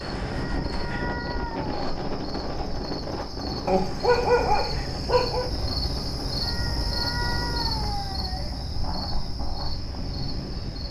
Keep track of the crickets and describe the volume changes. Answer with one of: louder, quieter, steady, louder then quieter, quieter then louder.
louder then quieter.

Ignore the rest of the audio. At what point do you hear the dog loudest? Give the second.
4 s.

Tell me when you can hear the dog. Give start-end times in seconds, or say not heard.
3.6-5.5.